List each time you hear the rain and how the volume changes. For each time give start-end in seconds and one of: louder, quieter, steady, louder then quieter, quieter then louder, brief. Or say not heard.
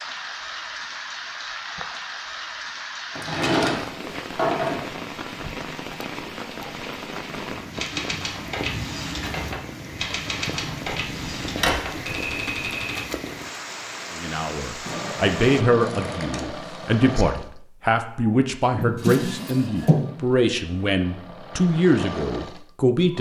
0.0-15.7 steady.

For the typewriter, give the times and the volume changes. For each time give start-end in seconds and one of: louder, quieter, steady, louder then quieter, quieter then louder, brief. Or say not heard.
7.7-13.1 steady.